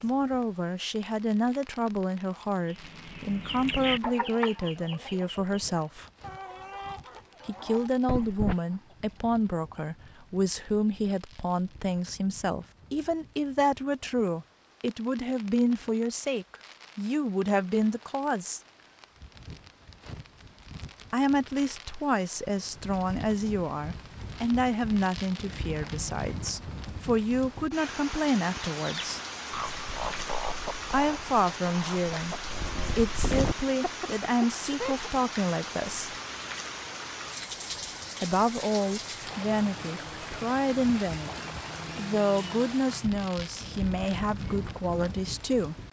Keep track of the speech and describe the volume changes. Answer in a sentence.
The volume of the speech stays about the same.